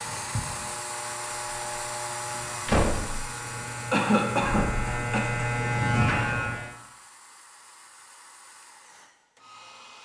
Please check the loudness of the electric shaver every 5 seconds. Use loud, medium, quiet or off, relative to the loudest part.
medium, loud.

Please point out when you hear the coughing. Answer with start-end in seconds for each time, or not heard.
3.9-5.2.